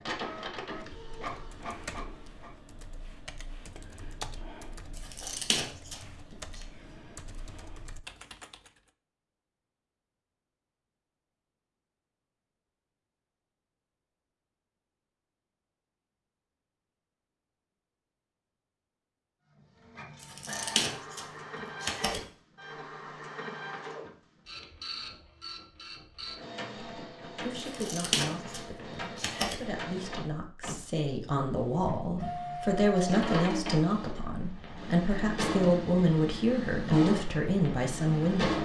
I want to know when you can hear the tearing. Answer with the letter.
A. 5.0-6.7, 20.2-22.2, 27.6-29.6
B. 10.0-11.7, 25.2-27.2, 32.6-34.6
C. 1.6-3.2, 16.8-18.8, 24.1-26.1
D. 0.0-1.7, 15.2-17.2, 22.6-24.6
A.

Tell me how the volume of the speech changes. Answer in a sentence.
The loudness of the speech goes up.